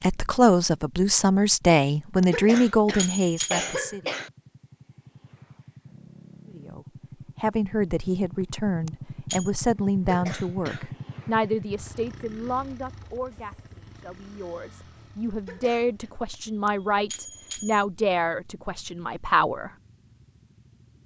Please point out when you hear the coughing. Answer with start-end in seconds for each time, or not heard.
2.3-4.3, 10.1-10.8, 15.4-16.1.